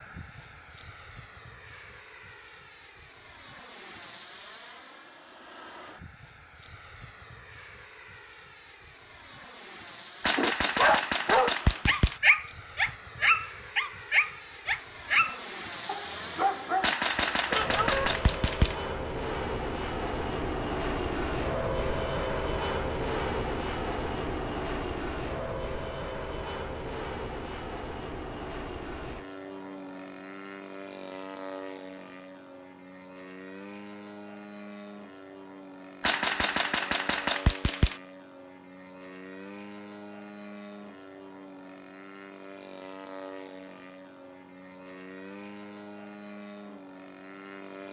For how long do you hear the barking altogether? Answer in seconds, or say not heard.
8 s.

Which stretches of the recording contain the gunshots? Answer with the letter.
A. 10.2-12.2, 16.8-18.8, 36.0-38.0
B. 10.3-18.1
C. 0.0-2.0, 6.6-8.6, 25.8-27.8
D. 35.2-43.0
A.